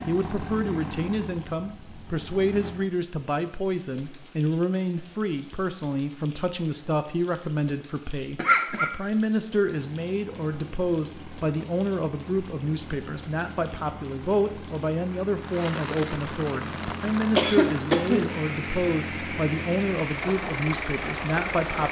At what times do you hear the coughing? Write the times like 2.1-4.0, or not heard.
8.3-8.9, 17.4-19.1.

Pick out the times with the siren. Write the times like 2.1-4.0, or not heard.
not heard.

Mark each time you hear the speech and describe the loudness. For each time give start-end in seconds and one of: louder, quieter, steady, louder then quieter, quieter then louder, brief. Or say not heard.
0.1-21.8 steady.